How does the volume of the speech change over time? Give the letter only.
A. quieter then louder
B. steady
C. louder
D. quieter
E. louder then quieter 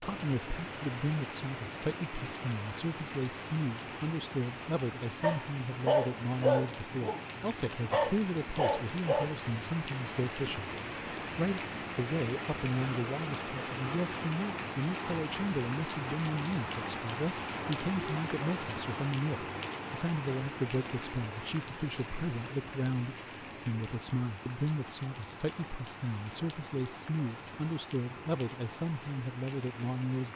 B.